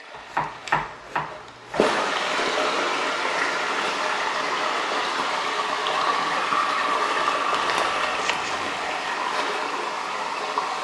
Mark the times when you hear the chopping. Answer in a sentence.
The chopping can be heard from 0.1 to 1.9 s and from 7.5 to 8.8 s.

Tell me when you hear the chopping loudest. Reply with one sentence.
The loudest moment of the chopping is at 1 second.